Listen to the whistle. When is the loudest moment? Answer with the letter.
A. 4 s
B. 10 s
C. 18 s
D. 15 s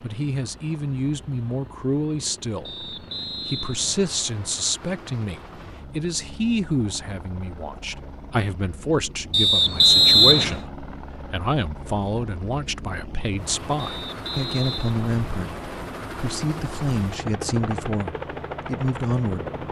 B.